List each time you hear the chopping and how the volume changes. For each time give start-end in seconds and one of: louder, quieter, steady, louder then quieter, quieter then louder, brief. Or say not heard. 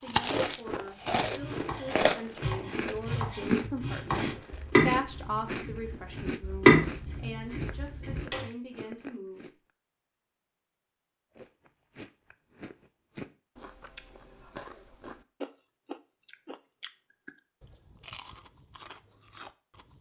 1.2-8.4 louder then quieter.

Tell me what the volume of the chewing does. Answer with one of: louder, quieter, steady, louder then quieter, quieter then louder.
quieter.